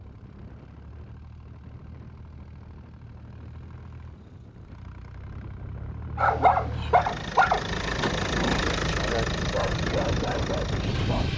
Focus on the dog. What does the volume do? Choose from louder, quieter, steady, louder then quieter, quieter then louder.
quieter.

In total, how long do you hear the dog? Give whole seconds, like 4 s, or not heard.
5 s.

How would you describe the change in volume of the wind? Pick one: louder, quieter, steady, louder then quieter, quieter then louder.
louder.